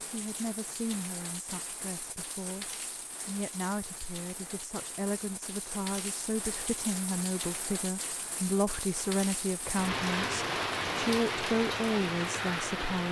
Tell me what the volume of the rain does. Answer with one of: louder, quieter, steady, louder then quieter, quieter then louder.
louder.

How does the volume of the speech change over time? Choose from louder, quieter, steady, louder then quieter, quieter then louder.
louder.